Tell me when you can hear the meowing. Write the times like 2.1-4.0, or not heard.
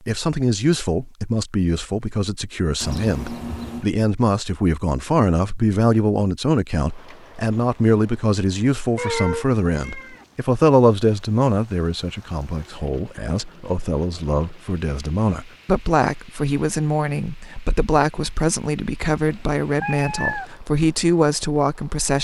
2.8-3.9, 8.9-10.2, 19.2-20.5.